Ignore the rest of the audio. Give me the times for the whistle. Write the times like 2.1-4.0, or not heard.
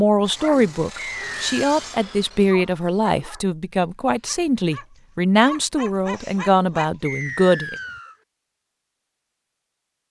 0.9-1.6, 7.0-8.2.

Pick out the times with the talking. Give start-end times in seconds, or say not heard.
0.0-7.8.